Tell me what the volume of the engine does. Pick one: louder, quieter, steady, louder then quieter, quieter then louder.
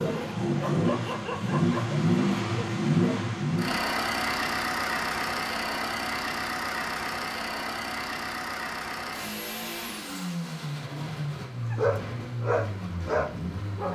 quieter.